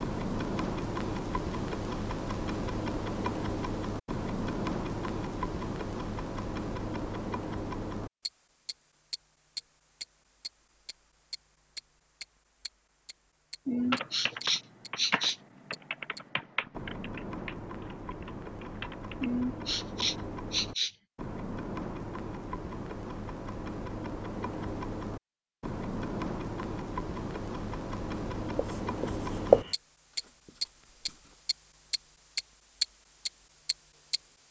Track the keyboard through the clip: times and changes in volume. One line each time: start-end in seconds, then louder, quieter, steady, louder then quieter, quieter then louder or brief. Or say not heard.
13.8-19.3 quieter.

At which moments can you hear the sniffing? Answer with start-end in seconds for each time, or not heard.
13.7-15.3, 19.2-20.9.